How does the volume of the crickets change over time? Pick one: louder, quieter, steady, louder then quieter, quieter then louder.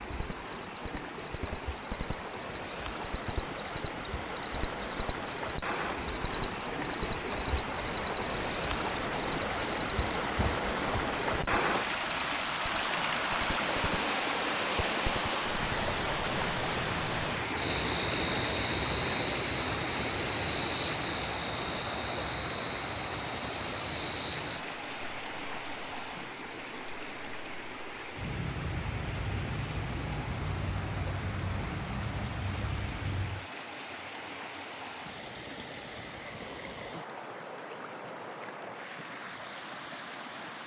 quieter.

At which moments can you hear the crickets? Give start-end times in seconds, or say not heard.
0.0-33.5.